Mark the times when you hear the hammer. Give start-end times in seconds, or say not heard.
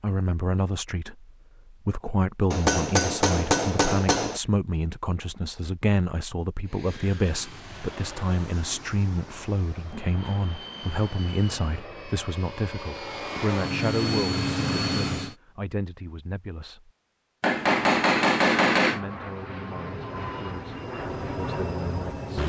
2.5-4.4, 17.4-19.0.